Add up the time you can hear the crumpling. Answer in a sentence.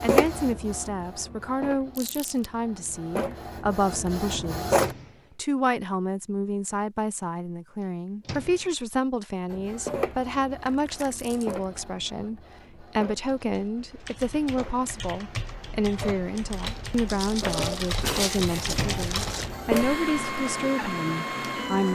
You can hear the crumpling for 4 seconds altogether.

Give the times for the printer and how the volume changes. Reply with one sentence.
The printer can be heard from 0.0 to 5.0 s, getting quieter then louder; and from 9.5 to 21.9 s, getting quieter then louder.